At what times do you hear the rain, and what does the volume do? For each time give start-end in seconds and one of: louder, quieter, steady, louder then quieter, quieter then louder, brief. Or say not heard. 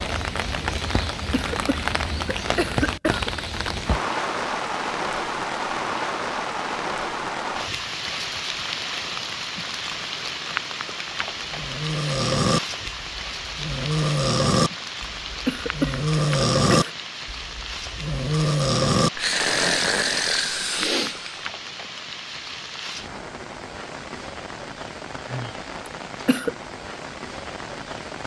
0.0-28.2 quieter.